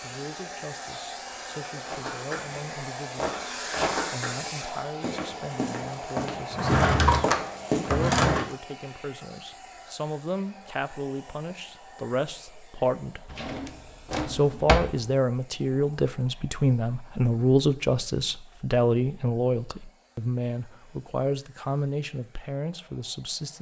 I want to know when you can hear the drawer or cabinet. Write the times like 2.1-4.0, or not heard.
6.5-8.4, 13.2-15.0.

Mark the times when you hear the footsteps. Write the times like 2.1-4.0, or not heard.
1.8-8.6.